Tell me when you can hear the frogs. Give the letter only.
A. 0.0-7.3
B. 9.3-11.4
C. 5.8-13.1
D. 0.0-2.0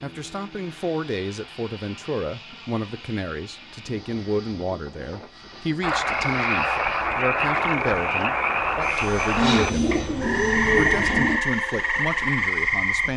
C.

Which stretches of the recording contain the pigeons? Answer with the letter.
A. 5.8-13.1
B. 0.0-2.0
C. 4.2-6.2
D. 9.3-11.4
D.